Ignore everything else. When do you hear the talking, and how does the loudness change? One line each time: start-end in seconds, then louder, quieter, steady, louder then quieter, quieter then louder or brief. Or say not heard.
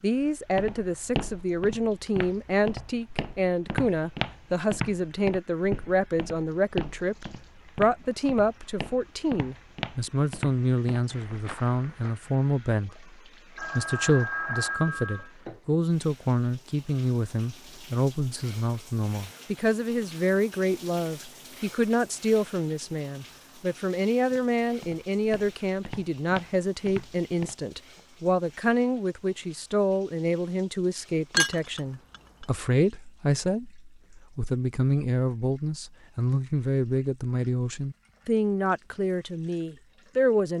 0.0-40.5 steady.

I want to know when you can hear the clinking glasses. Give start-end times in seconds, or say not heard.
31.3-32.5.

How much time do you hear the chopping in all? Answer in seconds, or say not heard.
not heard.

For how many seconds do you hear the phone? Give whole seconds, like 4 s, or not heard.
2 s.